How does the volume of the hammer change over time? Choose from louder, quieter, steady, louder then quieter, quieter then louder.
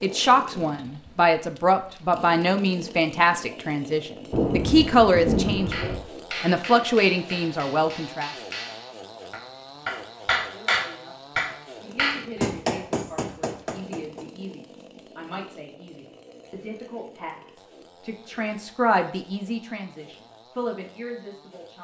louder.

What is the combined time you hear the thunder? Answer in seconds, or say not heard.
2 s.